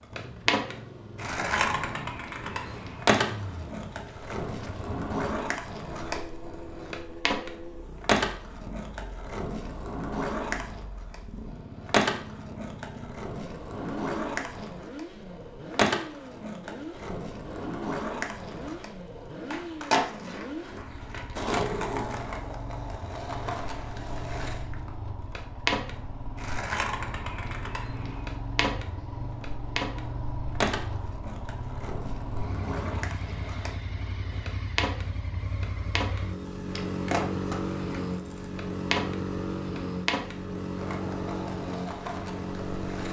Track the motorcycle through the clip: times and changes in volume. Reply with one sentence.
You can hear the motorcycle from 0.0 to 43.0 s, getting louder.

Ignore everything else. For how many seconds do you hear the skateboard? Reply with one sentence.
You can hear the skateboard for 43 seconds altogether.